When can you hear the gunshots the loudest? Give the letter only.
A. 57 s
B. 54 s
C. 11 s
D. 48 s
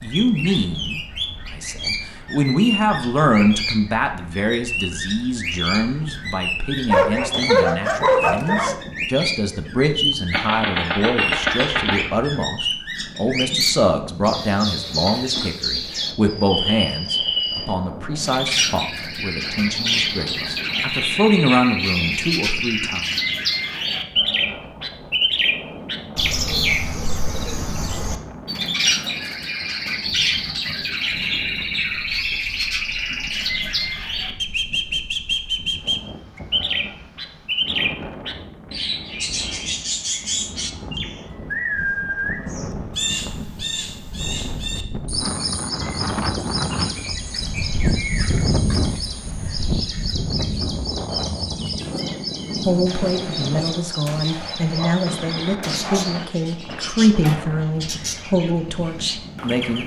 C.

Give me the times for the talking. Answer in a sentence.
You can hear the talking from 0.0 to 23.1 s and from 52.6 to 59.8 s.